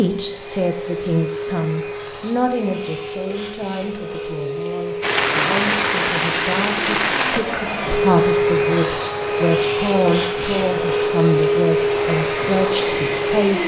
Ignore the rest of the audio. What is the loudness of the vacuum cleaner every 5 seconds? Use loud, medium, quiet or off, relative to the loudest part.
medium, loud, loud.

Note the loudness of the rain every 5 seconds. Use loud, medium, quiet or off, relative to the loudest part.
off, loud, medium.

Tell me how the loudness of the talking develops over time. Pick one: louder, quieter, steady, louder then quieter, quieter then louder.
quieter then louder.